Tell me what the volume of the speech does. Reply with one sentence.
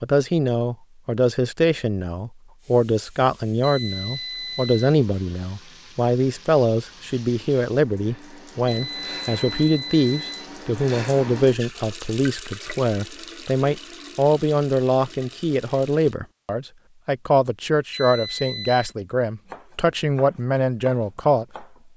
The volume of the speech stays about the same.